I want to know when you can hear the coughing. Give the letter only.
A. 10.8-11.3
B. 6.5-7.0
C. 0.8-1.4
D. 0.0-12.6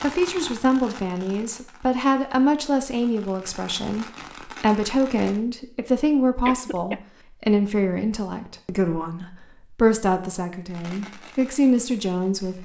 B.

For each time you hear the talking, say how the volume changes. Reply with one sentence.
You can hear the talking from 0.0 to 12.6 s, at a steady volume.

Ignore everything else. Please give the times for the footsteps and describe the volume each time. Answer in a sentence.
You can't hear the footsteps here.